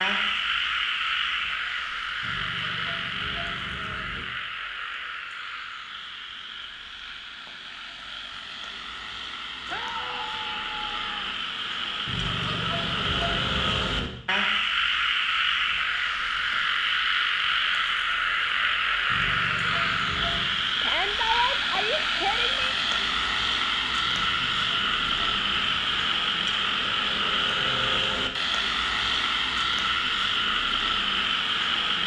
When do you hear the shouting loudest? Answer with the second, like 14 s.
21 s.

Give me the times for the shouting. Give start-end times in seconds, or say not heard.
9.7-11.3, 20.8-22.8.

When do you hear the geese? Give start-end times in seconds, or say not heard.
2.2-4.2, 12.1-14.1, 19.1-20.6, 24.1-26.1.